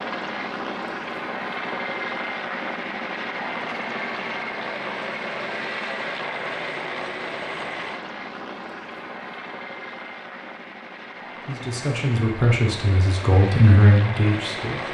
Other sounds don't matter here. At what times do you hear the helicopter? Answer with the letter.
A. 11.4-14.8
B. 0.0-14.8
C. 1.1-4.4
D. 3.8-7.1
B.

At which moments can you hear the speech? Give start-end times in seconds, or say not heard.
11.4-14.8.